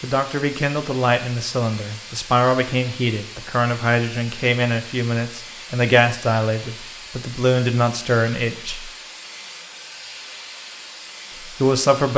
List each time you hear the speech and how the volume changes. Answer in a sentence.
The speech can be heard from 0.0 to 8.9 s, at a steady volume; and briefly from 11.6 to 12.1 s.